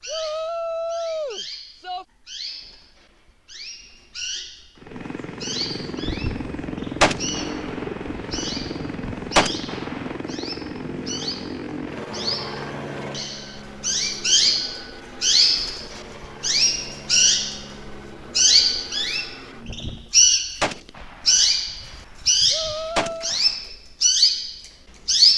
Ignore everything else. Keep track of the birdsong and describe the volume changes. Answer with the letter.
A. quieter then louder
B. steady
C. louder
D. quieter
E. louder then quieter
C.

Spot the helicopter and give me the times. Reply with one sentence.
The helicopter can be heard from 4.8 to 20.1 s.